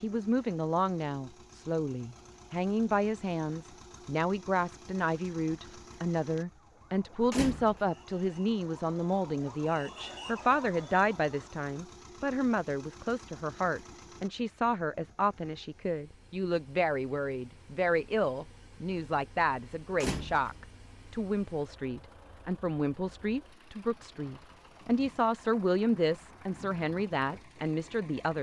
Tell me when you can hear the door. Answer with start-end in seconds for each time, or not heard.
7.2-7.8, 19.9-20.7.